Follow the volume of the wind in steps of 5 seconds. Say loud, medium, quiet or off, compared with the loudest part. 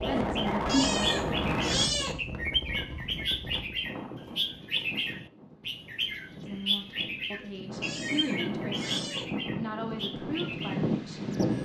loud, medium, loud.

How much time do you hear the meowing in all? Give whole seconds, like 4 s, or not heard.
3 s.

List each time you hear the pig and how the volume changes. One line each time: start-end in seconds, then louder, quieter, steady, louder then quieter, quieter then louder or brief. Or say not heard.
not heard.